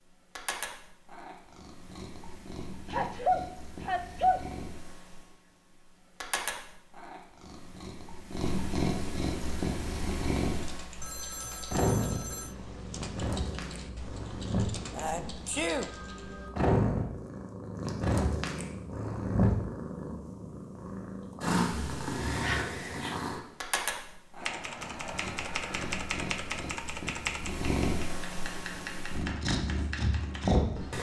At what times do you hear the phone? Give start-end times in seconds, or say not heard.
11.0-12.6, 15.8-16.6.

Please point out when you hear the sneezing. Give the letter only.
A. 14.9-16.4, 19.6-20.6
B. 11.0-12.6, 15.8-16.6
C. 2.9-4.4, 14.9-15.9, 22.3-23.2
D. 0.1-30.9
C.